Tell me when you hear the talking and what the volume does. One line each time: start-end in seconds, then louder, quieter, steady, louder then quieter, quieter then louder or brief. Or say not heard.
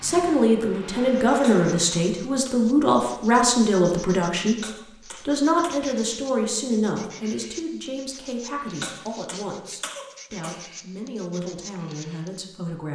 0.0-12.8 quieter.